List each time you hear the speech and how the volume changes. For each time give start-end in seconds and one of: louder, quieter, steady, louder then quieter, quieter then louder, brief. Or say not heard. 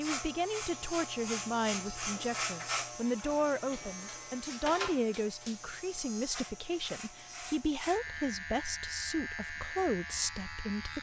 0.0-10.9 steady.